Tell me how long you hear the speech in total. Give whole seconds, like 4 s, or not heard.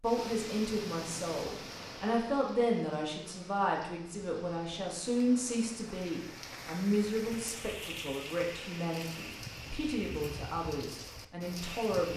12 s.